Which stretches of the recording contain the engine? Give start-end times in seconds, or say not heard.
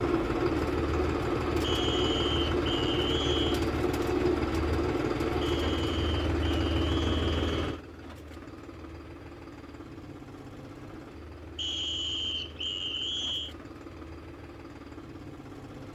0.0-15.8.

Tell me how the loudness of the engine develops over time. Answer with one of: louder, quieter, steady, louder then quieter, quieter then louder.
quieter.